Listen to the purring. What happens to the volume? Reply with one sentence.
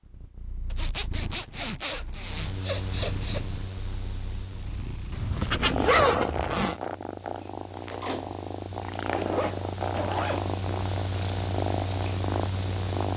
The volume of the purring goes up.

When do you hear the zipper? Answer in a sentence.
You can hear the zipper from 0.7 to 2.5 s, from 5.1 to 6.8 s and from 9.1 to 10.5 s.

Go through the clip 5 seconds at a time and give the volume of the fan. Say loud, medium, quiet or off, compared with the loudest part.
medium, medium, loud.